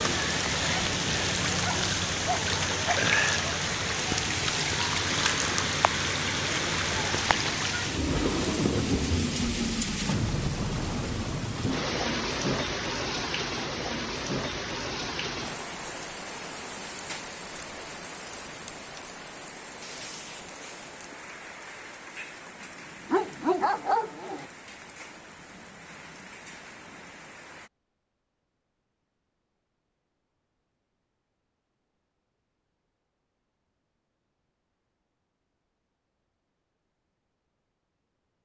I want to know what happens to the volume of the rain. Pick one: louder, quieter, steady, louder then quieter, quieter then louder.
quieter.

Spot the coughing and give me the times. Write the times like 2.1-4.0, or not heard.
not heard.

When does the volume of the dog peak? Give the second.
24 s.